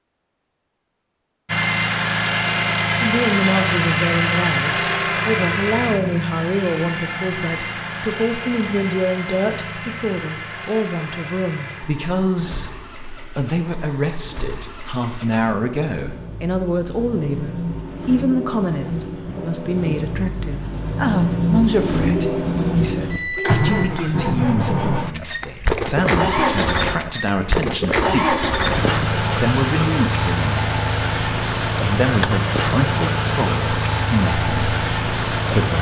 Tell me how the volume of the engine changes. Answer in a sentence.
The volume of the engine goes down, then up.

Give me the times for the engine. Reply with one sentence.
The engine can be heard from 1.4 to 35.7 s.